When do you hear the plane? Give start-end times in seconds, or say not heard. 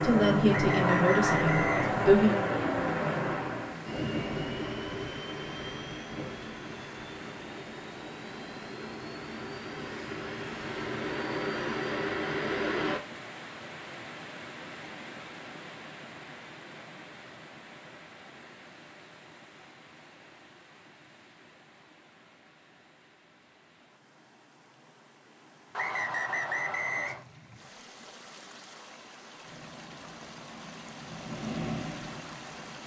0.0-13.0, 29.4-32.8.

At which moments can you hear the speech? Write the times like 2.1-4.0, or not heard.
0.0-2.4.